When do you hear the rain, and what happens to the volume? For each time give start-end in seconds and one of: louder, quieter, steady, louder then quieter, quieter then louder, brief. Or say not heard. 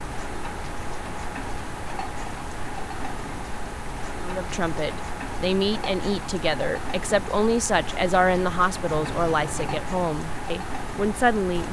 0.0-11.6 steady.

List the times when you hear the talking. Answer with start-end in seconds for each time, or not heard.
4.2-11.6.